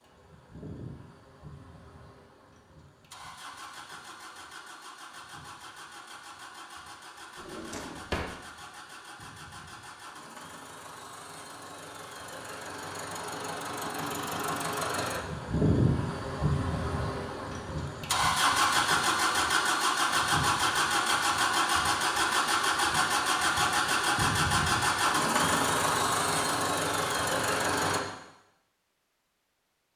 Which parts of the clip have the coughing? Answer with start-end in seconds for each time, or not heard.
not heard.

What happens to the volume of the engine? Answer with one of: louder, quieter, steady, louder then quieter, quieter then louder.
louder.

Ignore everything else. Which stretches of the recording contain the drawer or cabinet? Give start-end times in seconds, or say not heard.
7.3-8.3.